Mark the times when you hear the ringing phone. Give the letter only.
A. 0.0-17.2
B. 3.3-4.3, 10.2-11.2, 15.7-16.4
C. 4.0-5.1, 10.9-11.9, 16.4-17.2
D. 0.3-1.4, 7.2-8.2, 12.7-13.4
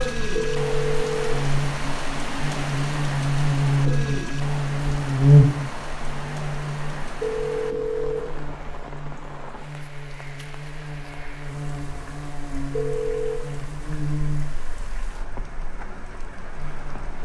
D.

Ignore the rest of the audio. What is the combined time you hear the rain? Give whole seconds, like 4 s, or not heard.
17 s.